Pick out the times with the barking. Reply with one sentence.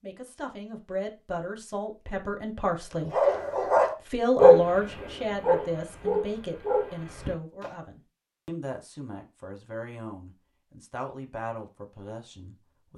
The barking can be heard from 3.1 to 7.7 s.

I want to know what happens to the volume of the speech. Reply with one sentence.
The volume of the speech goes up, then down.